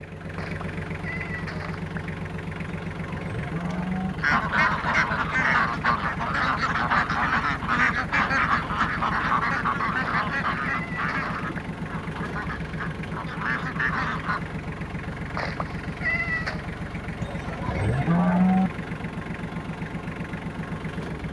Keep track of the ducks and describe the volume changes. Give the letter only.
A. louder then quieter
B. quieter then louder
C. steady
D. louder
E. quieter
E.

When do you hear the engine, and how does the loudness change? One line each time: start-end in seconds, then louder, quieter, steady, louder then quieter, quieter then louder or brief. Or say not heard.
0.0-21.2 steady.